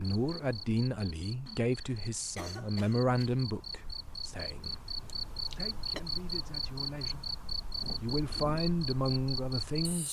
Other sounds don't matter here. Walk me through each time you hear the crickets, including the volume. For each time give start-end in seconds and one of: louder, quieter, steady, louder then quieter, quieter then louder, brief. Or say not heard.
0.0-10.0 louder.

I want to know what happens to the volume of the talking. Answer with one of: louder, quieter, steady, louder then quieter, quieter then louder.
quieter then louder.